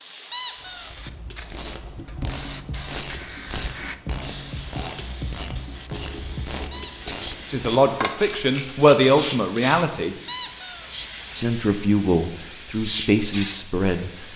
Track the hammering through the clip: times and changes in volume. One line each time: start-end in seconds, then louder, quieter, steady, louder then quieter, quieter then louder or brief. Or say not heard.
not heard.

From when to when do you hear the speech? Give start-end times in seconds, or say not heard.
7.5-10.2, 11.3-14.2.